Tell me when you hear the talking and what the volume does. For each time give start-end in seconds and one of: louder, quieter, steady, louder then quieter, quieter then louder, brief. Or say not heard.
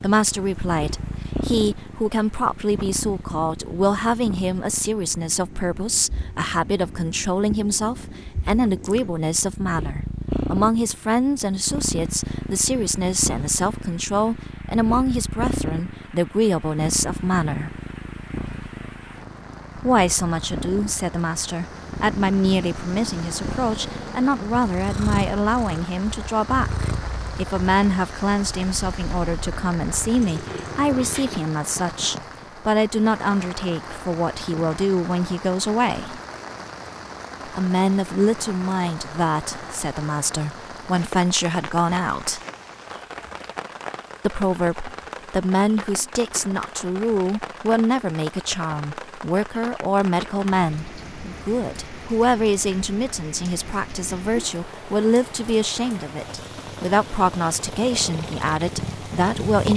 0.0-17.8 steady
19.8-36.2 steady
37.5-42.4 quieter then louder
44.2-59.7 steady.